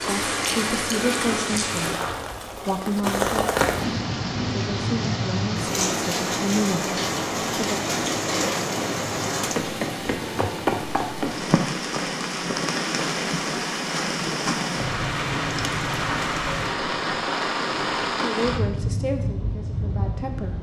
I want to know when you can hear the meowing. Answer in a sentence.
The meowing can't be heard in this clip.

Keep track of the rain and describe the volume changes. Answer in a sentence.
The volume of the rain stays about the same.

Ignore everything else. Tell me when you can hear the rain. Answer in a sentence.
The rain can be heard from 0.0 to 20.5 s.